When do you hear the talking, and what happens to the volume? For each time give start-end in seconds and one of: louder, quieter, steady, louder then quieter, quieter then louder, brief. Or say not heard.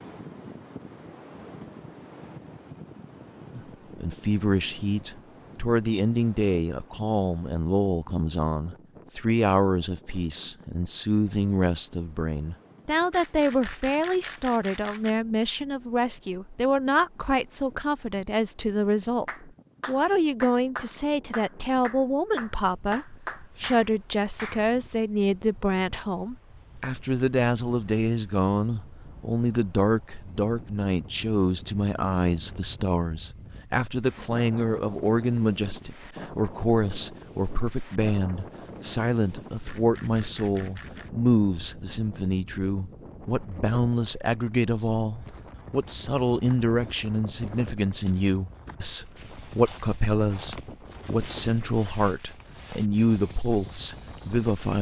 3.5-54.7 steady.